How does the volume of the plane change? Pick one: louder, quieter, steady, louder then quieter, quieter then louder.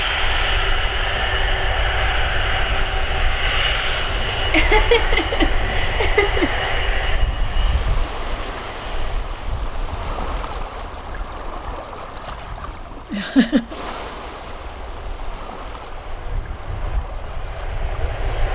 quieter then louder.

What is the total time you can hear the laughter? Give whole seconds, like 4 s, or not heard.
3 s.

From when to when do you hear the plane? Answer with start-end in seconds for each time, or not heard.
0.0-18.5.